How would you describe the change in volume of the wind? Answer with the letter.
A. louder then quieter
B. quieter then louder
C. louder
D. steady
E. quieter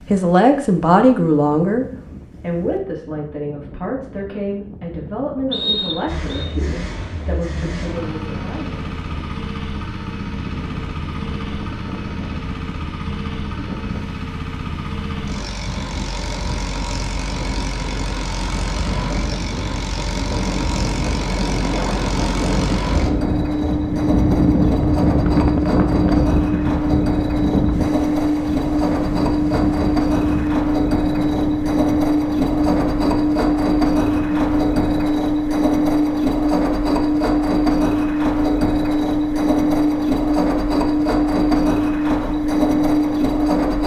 A.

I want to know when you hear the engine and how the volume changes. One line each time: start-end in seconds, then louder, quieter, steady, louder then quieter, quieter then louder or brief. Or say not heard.
6.0-43.8 louder.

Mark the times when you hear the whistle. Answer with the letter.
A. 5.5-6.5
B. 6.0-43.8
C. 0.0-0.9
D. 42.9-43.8
A.